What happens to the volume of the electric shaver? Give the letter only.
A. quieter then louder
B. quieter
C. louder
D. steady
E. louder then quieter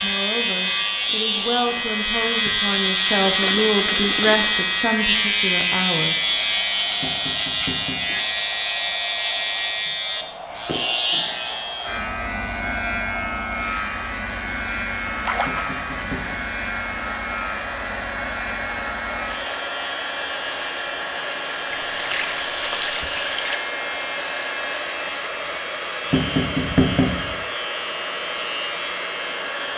B.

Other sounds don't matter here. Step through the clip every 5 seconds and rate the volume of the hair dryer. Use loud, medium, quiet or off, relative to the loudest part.
medium, medium, medium, loud, loud, loud.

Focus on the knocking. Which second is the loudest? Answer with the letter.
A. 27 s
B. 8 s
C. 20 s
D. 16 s
A.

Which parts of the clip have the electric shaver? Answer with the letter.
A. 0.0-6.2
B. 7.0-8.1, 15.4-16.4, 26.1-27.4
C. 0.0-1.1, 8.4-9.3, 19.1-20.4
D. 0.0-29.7
D.